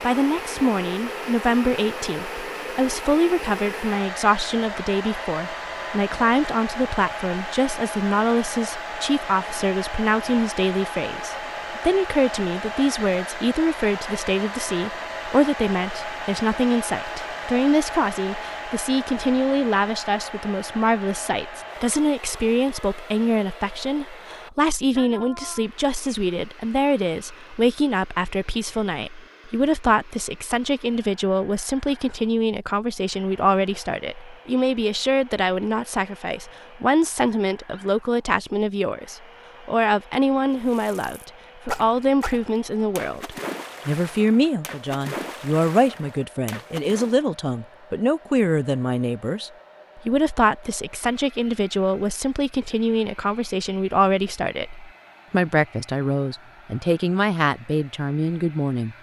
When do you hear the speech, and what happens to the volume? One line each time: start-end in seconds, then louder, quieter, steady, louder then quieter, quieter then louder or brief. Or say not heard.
0.0-58.9 steady.